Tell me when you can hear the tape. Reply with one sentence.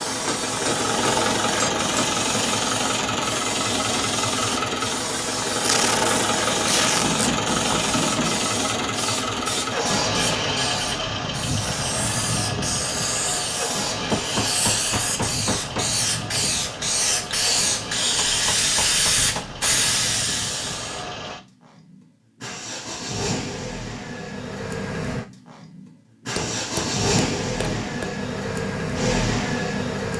You can hear the tape from 5.6 to 7.3 s.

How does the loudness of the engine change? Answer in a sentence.
The loudness of the engine goes down, then up.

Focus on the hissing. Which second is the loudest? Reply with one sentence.
The volume of the hissing peaks at 19 seconds.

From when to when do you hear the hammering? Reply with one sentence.
The hammering can be heard from 0.2 to 2.1 s, from 7.0 to 8.5 s, from 14.1 to 15.9 s, from 18.2 to 19.6 s and from 26.4 to 28.1 s.